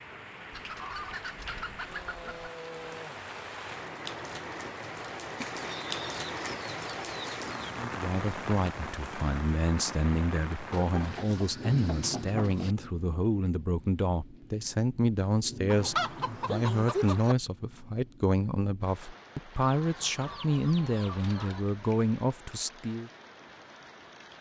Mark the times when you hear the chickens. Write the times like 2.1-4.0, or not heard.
0.5-2.5, 5.4-7.8, 10.7-12.8, 15.7-17.4, 19.6-21.6.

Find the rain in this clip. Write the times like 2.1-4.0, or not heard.
0.0-24.3.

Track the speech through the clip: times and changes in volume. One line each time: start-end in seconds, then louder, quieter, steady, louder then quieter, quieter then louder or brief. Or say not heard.
7.8-23.1 steady.